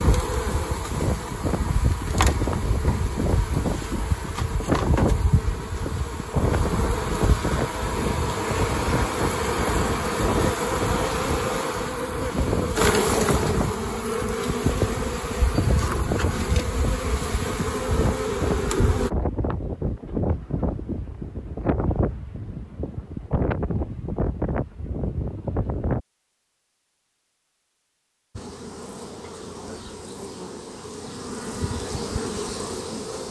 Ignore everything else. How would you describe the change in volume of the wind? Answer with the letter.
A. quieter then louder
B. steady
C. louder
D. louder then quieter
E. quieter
B.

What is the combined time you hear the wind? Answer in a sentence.
You can hear the wind for 26 seconds altogether.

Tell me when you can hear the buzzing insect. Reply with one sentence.
The buzzing insect can be heard from 0.0 to 19.1 s and from 28.3 to 33.2 s.